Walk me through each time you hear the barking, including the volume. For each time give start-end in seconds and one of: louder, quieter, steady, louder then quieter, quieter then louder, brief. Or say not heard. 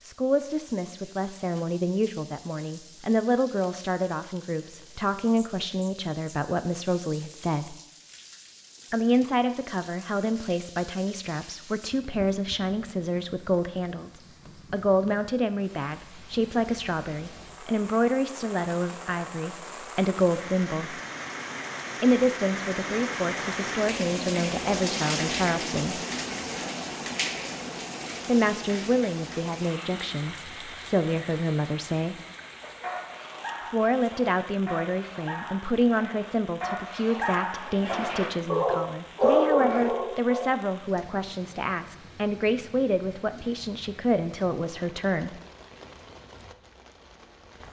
32.8-40.5 louder.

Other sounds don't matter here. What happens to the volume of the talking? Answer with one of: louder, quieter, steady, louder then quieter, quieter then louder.
steady.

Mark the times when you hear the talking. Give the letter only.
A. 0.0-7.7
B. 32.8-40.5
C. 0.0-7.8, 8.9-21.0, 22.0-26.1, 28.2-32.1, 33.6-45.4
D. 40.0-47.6
C.